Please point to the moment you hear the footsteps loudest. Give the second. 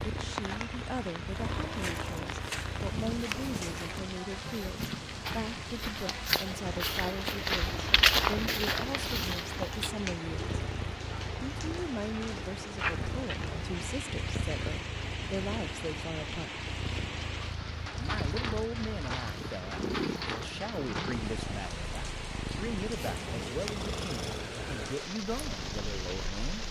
8 s.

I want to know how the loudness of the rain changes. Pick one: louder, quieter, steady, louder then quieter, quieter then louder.
steady.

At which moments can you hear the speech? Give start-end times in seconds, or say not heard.
0.0-10.6, 11.4-16.6, 17.9-26.6.